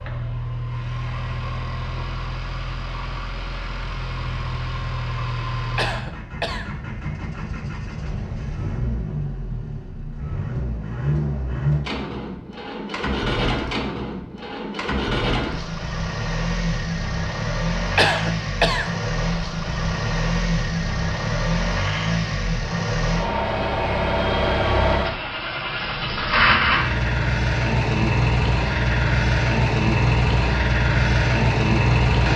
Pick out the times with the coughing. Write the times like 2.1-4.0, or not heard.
5.8-6.7, 17.9-18.9.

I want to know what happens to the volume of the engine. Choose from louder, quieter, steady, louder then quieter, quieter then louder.
louder.